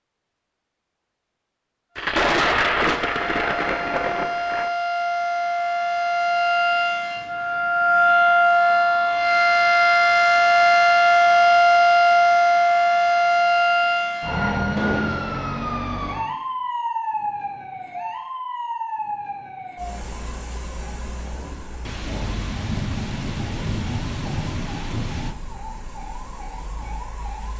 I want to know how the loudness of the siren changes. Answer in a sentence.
The volume of the siren goes up, then down.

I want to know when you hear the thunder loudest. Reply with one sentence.
The volume of the thunder peaks at 2 seconds.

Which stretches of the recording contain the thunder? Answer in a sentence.
You can hear the thunder from 1.9 to 4.7 s and from 21.9 to 25.4 s.